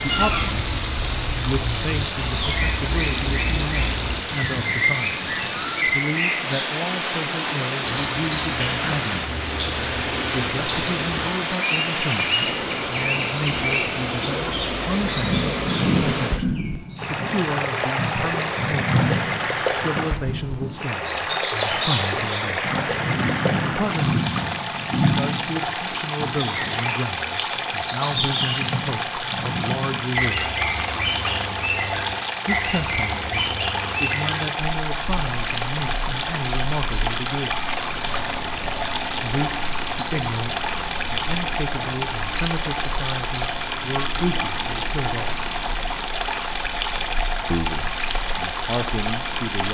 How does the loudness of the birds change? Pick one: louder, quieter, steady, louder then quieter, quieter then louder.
quieter.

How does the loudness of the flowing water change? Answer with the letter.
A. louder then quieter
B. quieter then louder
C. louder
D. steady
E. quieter
D.